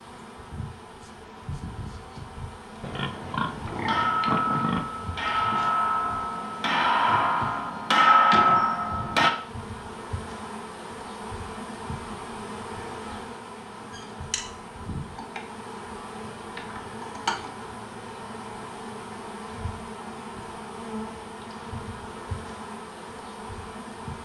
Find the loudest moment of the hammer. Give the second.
8 s.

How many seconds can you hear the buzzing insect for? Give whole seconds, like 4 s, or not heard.
24 s.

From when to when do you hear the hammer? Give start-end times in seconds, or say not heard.
3.6-9.3.